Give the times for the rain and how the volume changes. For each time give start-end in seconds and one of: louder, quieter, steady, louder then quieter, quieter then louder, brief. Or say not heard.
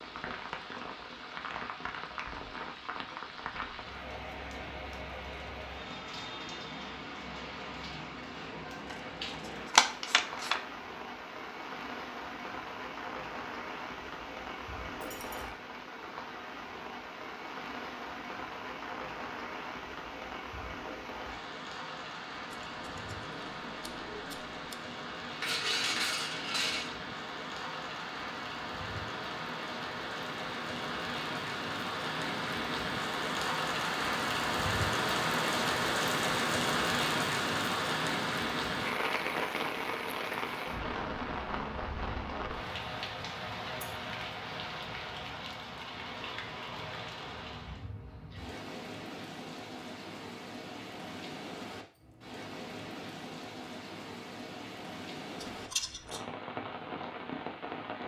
0.0-58.0 louder then quieter.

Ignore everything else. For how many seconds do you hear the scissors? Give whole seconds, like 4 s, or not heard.
5 s.